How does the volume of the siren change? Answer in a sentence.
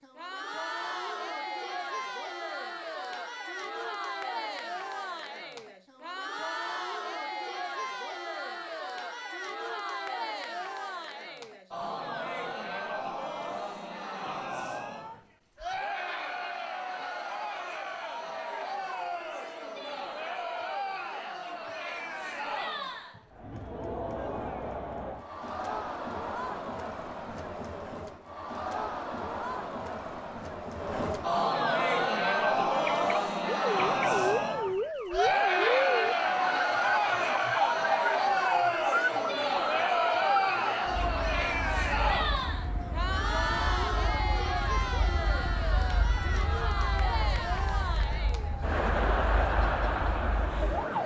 The volume of the siren goes down.